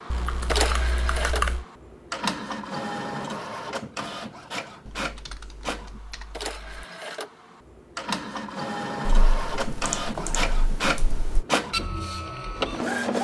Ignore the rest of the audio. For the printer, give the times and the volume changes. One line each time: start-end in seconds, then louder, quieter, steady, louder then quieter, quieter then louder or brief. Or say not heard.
0.0-13.1 quieter then louder.